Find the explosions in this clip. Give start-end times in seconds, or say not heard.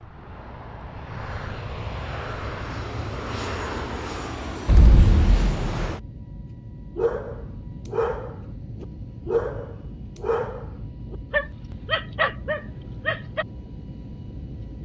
4.7-5.8.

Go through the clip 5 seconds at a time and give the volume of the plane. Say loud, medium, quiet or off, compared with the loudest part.
loud, loud, medium.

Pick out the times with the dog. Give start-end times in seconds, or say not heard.
7.0-13.4.